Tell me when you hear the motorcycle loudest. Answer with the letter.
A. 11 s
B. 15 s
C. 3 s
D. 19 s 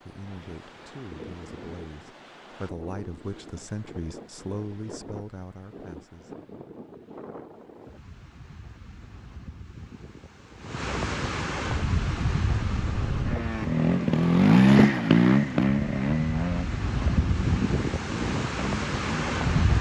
B.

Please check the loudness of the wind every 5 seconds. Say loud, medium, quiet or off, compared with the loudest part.
quiet, quiet, loud, loud.